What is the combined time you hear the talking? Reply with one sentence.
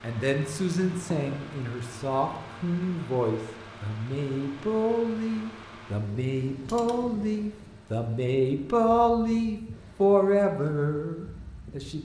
The talking can be heard for 12 seconds in total.